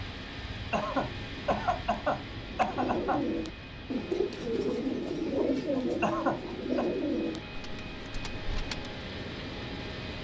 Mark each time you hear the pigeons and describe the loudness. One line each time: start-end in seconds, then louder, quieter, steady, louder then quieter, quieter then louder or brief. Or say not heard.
2.5-8.9 quieter.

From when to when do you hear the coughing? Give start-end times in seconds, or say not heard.
0.7-3.2, 6.0-6.8.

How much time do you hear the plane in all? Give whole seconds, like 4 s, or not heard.
10 s.